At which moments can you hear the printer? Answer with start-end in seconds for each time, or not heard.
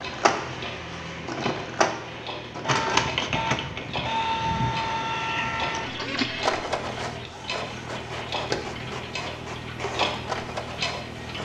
0.0-11.3.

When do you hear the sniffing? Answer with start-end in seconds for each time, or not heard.
not heard.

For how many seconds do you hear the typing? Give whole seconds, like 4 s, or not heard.
not heard.